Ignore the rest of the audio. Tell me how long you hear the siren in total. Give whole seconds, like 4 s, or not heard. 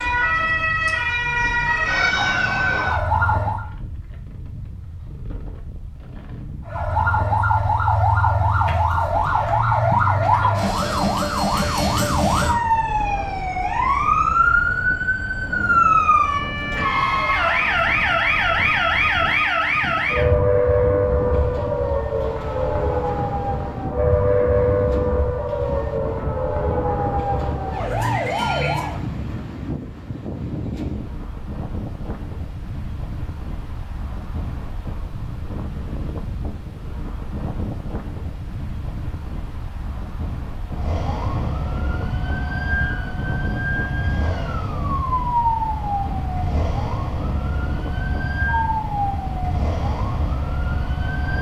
37 s.